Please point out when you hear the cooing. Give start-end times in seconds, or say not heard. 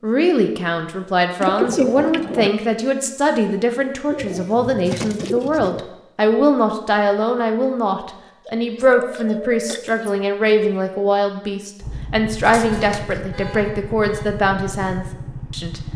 1.4-2.5, 4.1-5.9, 8.4-10.2, 12.4-13.2.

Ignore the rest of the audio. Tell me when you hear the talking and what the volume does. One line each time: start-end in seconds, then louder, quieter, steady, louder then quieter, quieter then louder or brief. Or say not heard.
0.0-15.8 steady.